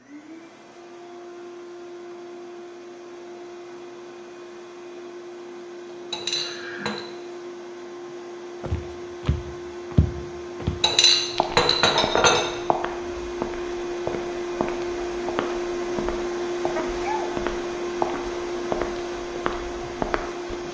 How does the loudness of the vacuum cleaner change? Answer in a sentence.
The volume of the vacuum cleaner goes up.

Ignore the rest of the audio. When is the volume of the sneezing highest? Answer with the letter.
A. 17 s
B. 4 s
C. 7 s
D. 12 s
A.